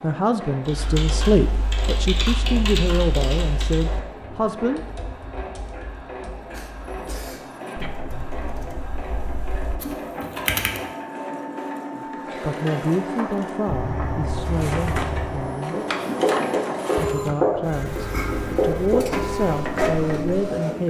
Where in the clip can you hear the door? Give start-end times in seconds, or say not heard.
not heard.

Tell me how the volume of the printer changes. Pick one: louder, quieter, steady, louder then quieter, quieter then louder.
louder.